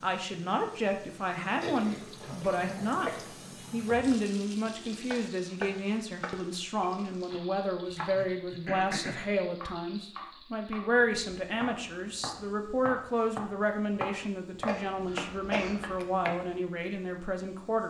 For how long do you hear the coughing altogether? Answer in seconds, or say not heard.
4 s.